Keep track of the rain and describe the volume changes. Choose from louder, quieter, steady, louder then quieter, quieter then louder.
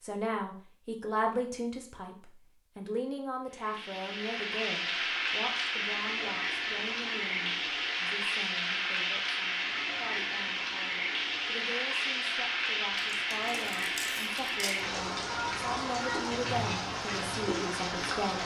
steady.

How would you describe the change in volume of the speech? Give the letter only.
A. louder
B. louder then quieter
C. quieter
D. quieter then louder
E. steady
D.